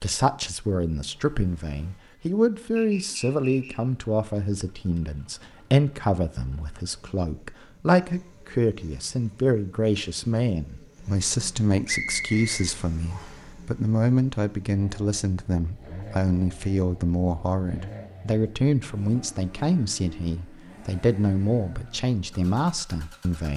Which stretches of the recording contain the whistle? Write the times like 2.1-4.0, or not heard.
2.8-3.8, 11.8-13.4.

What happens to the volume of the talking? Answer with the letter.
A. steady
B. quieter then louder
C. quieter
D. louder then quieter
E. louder
A.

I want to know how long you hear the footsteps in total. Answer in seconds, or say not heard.
not heard.